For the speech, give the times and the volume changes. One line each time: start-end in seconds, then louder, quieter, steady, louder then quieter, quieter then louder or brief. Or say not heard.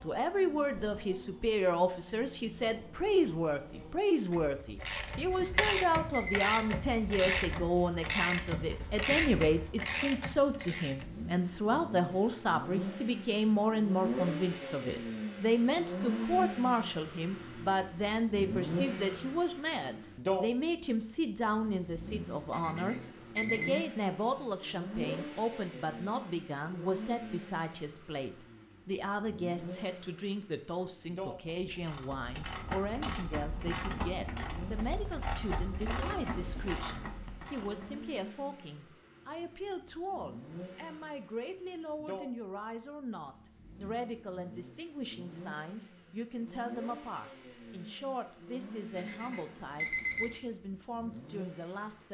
0.0-52.0 quieter.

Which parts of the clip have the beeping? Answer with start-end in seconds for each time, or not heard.
5.3-6.7, 22.5-23.9, 49.0-50.4.